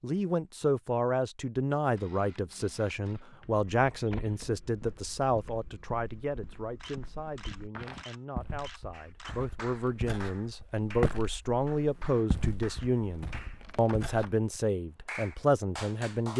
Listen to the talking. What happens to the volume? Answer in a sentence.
The loudness of the talking goes down, then up.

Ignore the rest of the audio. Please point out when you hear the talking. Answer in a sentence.
You can hear the talking from 0.0 to 16.3 s.